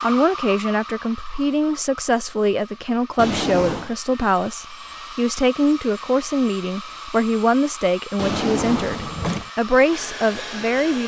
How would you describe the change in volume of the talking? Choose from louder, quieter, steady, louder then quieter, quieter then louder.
steady.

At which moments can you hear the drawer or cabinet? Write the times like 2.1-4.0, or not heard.
3.1-4.0, 8.2-9.5.